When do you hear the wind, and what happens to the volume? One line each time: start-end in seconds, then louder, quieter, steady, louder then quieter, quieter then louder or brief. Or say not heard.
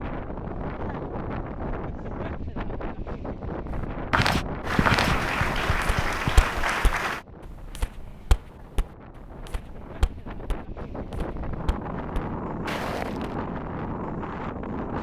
0.0-14.9 quieter then louder.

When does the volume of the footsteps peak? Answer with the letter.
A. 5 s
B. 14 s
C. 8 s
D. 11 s
A.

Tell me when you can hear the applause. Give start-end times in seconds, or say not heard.
4.6-7.2.